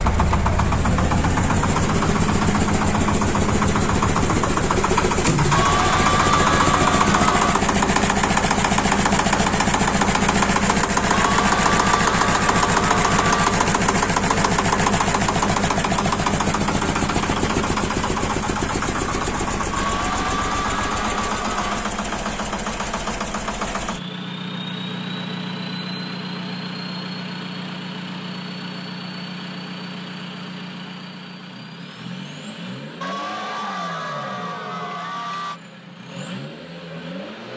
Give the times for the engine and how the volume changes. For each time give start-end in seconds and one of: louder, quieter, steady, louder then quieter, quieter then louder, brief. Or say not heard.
0.0-37.5 quieter.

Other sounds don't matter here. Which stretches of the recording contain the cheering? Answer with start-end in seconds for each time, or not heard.
5.5-7.7, 11.1-13.6, 19.8-21.9, 33.0-35.6.